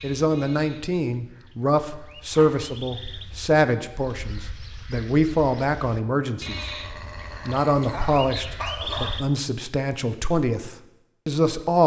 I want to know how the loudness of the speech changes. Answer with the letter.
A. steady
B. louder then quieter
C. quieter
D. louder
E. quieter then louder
A.